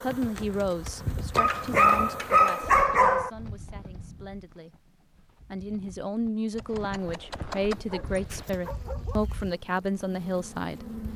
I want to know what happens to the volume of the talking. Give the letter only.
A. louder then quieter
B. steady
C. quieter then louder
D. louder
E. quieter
C.